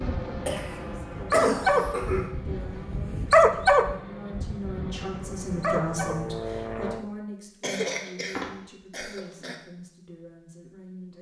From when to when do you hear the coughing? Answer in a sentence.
The coughing can be heard from 0.5 to 2.3 s and from 7.6 to 9.6 s.